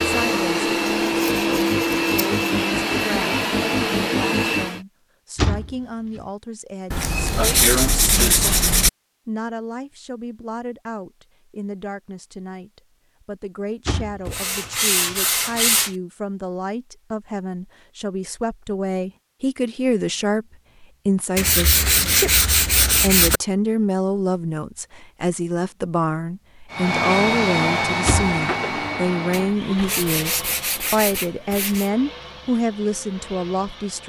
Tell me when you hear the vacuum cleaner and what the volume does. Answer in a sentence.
You can hear the vacuum cleaner from 0.0 to 4.8 s, at a steady volume; and from 26.7 to 34.0 s, getting quieter.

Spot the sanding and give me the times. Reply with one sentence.
You can hear the sanding from 0.8 to 2.3 s, from 6.9 to 8.9 s, from 14.2 to 15.9 s, from 21.4 to 23.4 s and from 29.3 to 31.9 s.